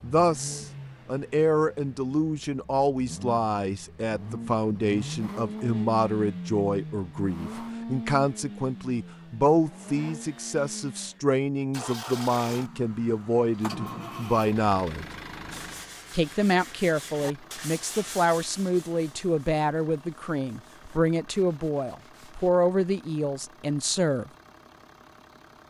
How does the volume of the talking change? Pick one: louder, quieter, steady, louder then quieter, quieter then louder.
steady.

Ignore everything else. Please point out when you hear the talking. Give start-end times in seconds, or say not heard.
0.0-15.1, 16.1-24.3.